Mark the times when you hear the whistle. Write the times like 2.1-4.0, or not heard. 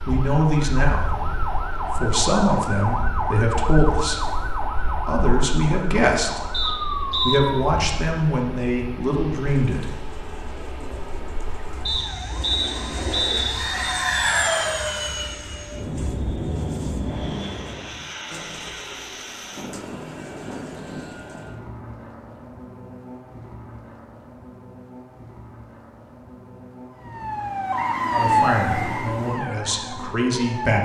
6.5-7.4, 11.8-13.6, 27.7-29.1.